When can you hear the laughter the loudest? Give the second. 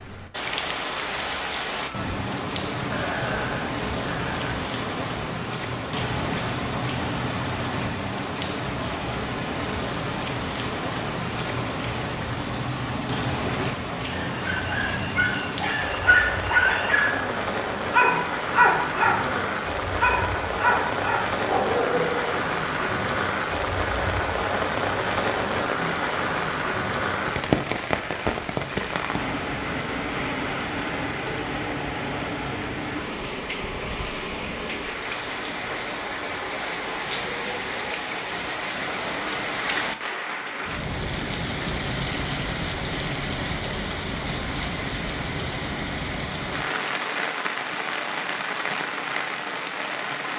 3 s.